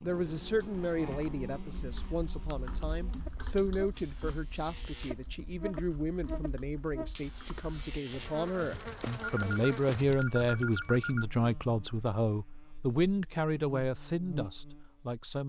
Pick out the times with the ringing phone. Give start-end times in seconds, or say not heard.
9.2-11.2.